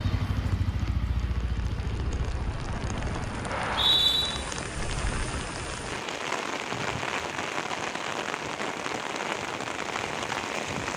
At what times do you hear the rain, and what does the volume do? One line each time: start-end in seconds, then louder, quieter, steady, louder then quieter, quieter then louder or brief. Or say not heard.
0.1-10.9 louder.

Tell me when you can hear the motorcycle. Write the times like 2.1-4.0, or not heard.
0.0-3.5.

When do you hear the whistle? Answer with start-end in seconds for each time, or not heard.
3.5-4.2.